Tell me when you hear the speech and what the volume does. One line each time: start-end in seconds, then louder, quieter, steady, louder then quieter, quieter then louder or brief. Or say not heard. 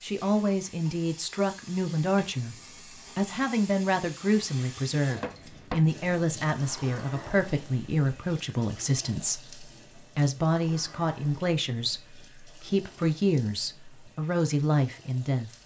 0.0-2.5 brief
3.1-15.5 steady.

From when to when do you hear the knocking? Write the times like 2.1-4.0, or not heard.
5.2-5.8.